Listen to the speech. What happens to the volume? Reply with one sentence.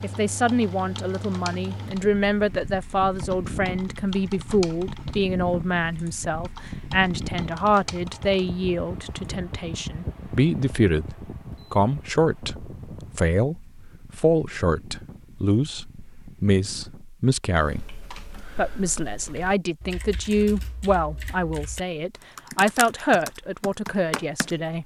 The volume of the speech stays about the same.